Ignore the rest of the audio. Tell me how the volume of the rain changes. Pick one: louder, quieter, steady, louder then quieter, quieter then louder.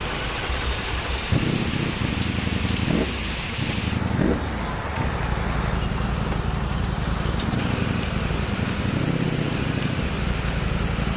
steady.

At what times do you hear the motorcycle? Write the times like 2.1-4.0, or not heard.
0.0-11.1.